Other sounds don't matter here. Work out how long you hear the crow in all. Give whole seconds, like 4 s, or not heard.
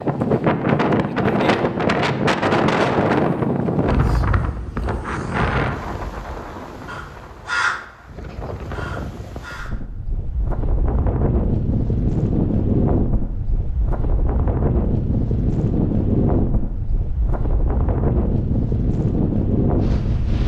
3 s.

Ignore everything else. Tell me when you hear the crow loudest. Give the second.
8 s.